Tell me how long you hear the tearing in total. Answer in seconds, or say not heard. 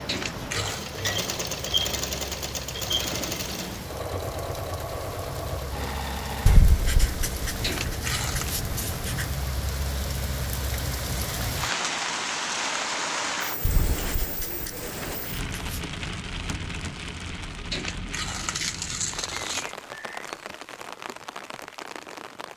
4 s.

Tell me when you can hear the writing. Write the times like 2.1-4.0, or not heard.
6.5-9.3, 13.6-15.8.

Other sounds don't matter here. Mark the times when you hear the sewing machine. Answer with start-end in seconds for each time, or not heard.
0.0-6.6.